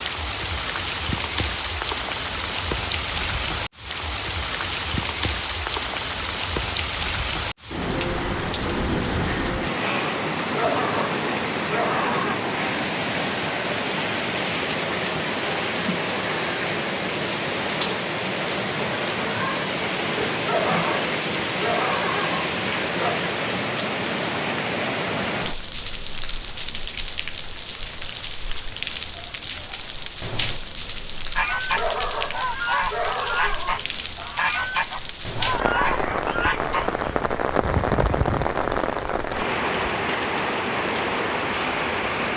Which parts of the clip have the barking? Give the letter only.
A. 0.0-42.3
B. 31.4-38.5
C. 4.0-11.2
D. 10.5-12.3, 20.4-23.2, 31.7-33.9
D.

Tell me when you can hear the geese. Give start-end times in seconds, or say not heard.
31.4-38.5.